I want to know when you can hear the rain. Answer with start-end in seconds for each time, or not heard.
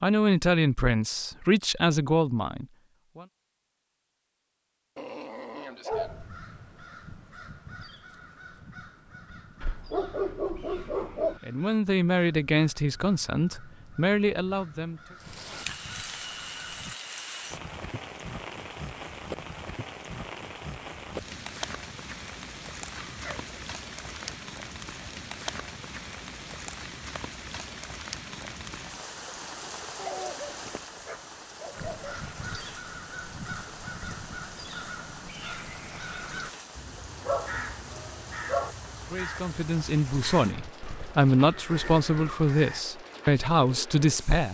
15.2-44.5.